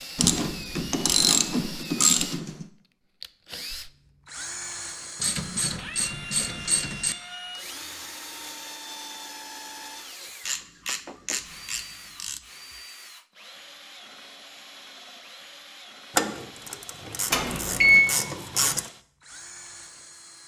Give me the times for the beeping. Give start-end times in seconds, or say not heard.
17.3-18.1.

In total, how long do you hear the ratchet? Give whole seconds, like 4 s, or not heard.
9 s.